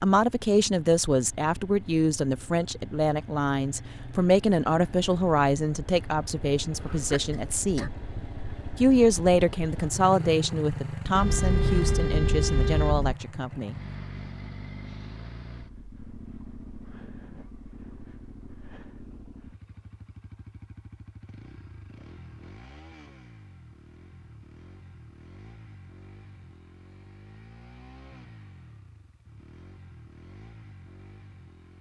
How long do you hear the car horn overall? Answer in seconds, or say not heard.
2 s.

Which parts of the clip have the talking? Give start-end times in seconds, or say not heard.
0.0-7.9, 8.8-13.8.